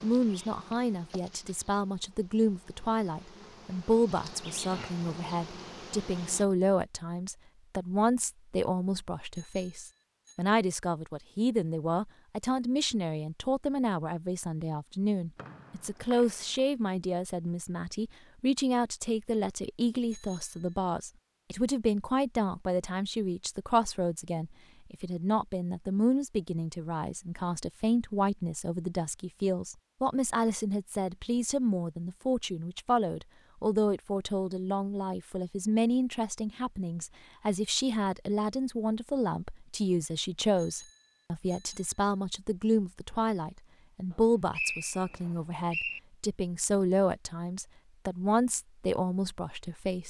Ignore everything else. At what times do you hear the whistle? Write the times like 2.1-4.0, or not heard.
15.3-16.6, 44.1-46.0.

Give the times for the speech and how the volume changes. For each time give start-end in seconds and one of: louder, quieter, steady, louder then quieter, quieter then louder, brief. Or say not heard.
0.0-50.0 steady.